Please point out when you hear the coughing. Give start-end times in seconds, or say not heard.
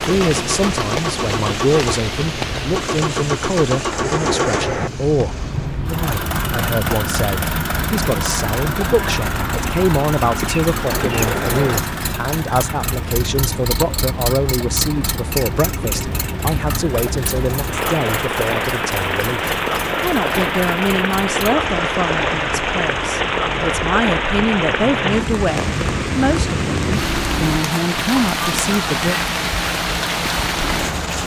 10.4-11.3.